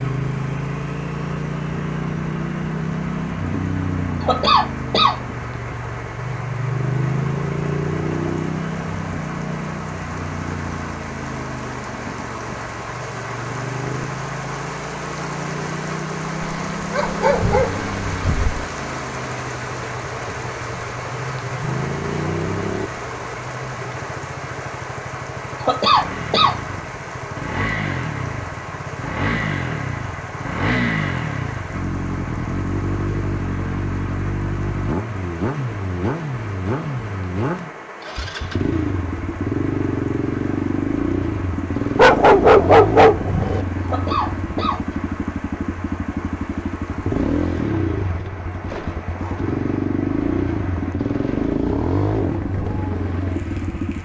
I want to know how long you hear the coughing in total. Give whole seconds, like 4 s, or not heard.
3 s.